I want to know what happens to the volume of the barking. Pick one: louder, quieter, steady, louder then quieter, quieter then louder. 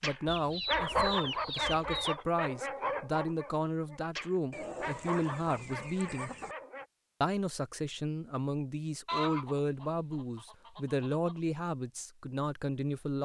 quieter.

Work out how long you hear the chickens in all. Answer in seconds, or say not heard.
6 s.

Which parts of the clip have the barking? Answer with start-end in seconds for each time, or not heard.
0.0-6.8.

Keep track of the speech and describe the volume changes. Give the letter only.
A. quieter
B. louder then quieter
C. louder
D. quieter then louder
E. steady
E.